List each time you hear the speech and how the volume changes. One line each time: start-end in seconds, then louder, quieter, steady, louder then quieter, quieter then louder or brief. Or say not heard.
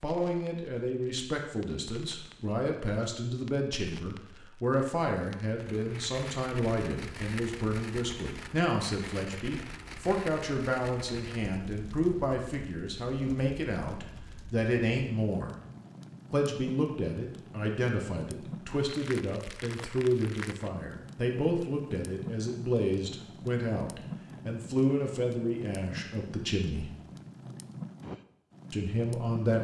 0.0-15.6 steady
16.3-26.9 steady
28.7-29.5 brief.